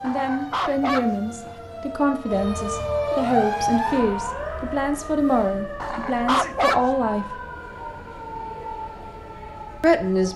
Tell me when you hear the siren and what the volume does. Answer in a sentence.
The siren can be heard from 0.0 to 10.3 s, getting louder then quieter.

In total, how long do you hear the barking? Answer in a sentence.
The barking can be heard for 3 seconds in total.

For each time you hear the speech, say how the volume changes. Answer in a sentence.
The speech can be heard from 0.0 to 7.3 s, at a steady volume; and briefly from 9.8 to 10.3 s.